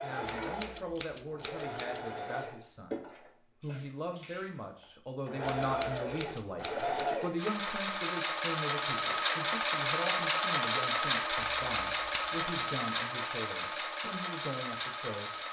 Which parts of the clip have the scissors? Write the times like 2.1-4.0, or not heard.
0.2-2.0, 5.5-7.0, 11.4-12.8.